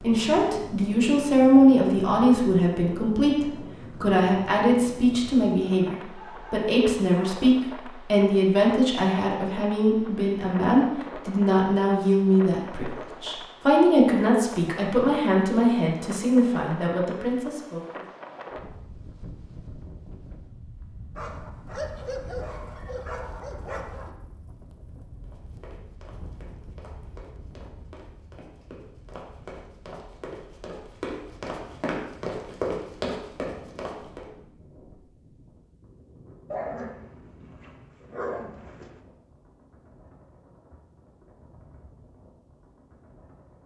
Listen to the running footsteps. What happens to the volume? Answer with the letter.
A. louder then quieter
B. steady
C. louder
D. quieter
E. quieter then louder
C.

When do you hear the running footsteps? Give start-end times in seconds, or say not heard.
25.2-34.2.